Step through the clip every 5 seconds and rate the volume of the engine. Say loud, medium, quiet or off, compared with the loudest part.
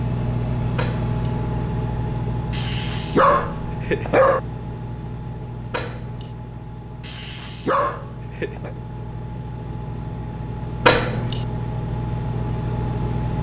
loud, medium, loud.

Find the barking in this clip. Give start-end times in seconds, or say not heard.
2.5-4.4, 7.0-8.7.